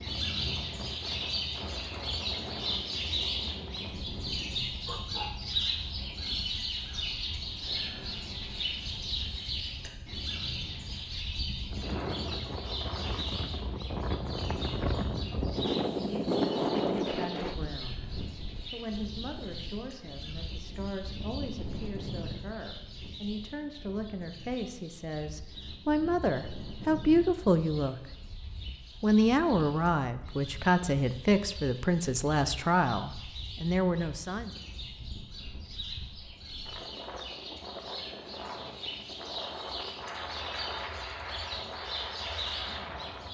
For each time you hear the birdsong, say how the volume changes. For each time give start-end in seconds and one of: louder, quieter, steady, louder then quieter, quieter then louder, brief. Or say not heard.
0.0-43.2 quieter then louder.